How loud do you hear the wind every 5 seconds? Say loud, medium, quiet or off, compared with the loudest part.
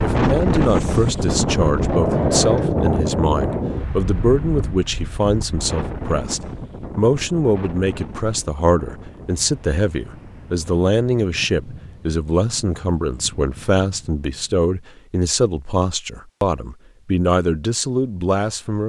loud, quiet, quiet, off.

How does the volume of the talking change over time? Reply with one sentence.
The volume of the talking stays about the same.